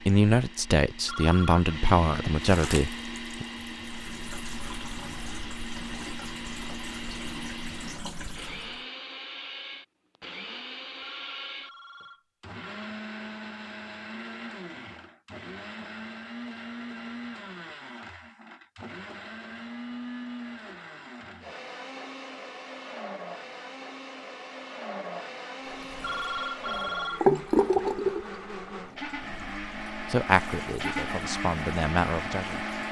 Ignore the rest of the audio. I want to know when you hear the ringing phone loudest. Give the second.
27 s.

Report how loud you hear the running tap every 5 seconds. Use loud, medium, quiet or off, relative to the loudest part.
quiet, quiet, off, off, off, loud, quiet.